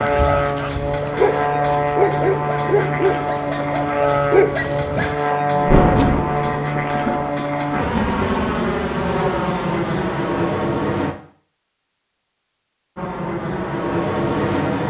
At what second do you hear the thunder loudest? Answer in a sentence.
The loudest moment of the thunder is at 6 seconds.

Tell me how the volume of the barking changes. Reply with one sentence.
The volume of the barking goes down, then up.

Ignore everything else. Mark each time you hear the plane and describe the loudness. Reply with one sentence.
The plane can be heard from 0.0 to 11.2 s, at a steady volume; and briefly from 12.9 to 14.8 s.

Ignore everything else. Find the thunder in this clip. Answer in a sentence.
You can hear the thunder from 5.5 to 8.2 s.